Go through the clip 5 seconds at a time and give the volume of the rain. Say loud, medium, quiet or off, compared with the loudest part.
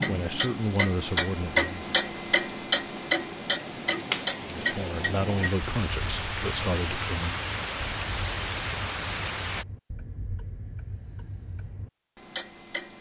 medium, loud, off.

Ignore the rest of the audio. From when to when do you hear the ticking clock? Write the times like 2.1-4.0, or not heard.
0.0-12.9.